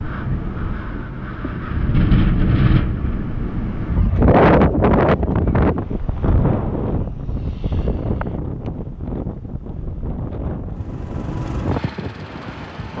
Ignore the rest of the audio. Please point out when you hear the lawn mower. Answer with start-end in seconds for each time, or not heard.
10.7-12.9.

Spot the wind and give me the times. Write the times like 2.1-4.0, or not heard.
0.0-12.9.